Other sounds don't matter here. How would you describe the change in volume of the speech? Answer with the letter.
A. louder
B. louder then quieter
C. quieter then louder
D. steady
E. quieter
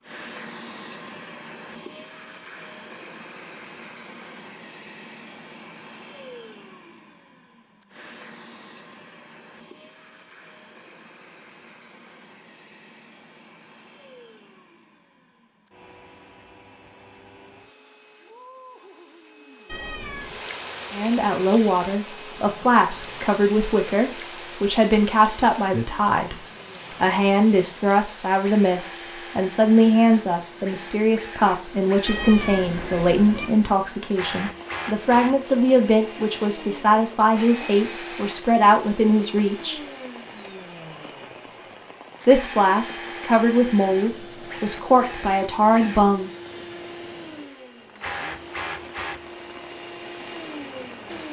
D.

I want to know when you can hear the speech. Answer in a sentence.
You can hear the speech from 20.9 to 39.8 s and from 42.2 to 46.3 s.